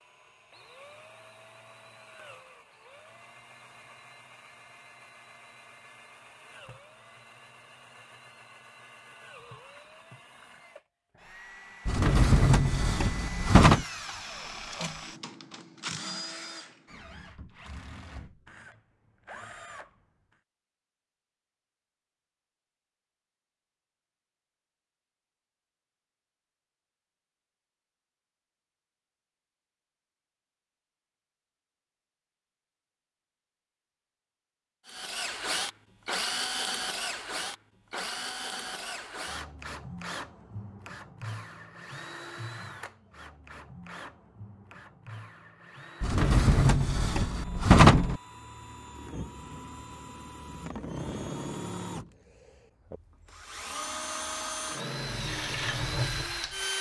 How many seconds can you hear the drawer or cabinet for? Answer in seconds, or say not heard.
4 s.